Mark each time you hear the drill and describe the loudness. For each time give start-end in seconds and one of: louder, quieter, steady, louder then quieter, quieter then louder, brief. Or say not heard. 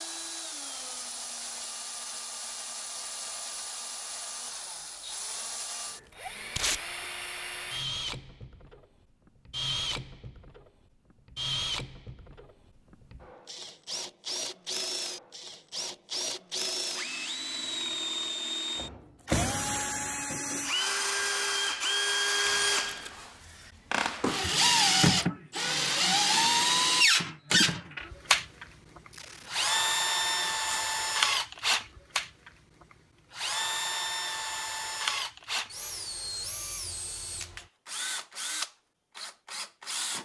0.0-40.2 louder then quieter.